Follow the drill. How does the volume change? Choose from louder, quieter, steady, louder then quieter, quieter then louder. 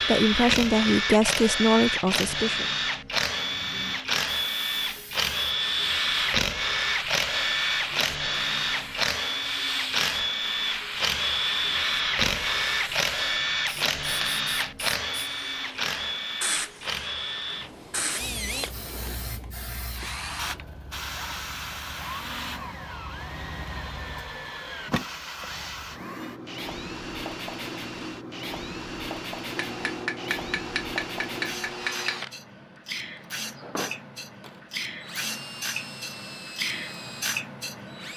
quieter.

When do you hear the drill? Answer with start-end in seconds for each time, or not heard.
0.0-38.1.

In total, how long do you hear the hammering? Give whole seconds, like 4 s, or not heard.
3 s.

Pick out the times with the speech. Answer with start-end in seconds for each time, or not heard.
0.1-2.7.